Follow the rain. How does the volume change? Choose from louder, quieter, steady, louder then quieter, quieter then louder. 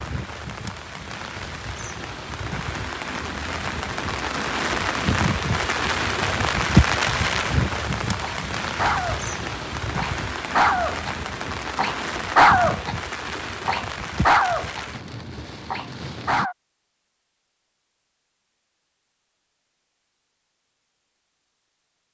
louder then quieter.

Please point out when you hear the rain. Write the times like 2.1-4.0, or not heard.
0.0-16.5.